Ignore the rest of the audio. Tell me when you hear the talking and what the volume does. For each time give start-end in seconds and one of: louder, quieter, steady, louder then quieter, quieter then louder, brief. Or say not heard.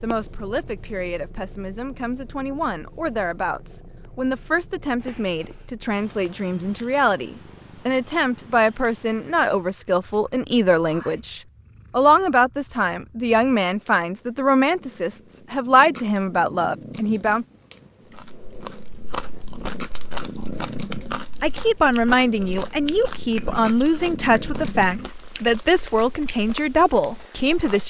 0.0-17.4 louder
21.4-27.8 steady.